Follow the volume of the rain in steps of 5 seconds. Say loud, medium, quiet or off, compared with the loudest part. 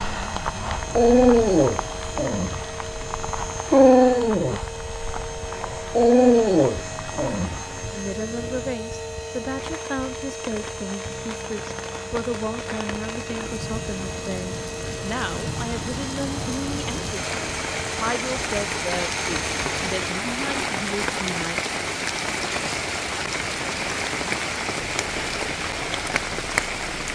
medium, quiet, medium, loud, loud, loud.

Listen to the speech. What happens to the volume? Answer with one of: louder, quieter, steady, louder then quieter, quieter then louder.
steady.